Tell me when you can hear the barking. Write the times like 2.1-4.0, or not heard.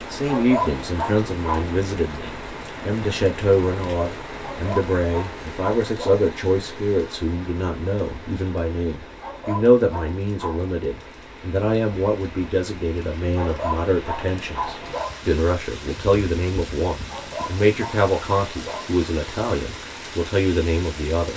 0.2-1.6, 4.4-6.2, 9.2-10.8, 13.3-15.2, 17.1-18.9.